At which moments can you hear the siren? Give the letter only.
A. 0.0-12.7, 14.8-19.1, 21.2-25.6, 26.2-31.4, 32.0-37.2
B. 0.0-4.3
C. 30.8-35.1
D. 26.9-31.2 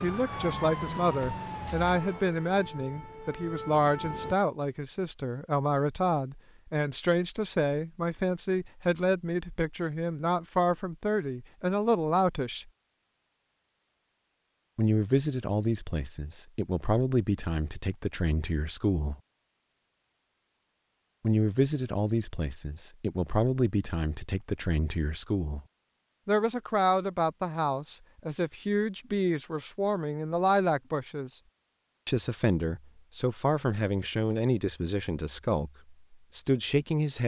B.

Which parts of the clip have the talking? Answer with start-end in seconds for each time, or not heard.
0.0-12.7, 14.8-19.1, 21.2-25.6, 26.2-31.4, 32.0-37.2.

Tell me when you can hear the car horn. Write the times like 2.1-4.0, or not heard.
not heard.